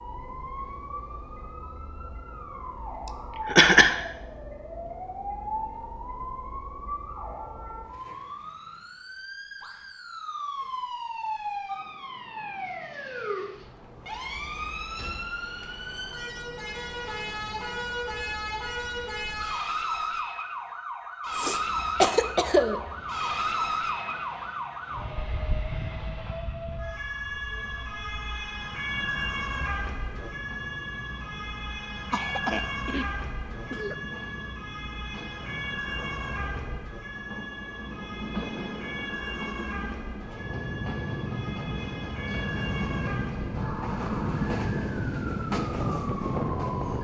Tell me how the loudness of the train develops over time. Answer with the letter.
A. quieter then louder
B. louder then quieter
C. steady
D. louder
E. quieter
D.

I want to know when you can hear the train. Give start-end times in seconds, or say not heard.
21.4-46.9.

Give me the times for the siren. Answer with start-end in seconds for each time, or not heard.
0.0-46.9.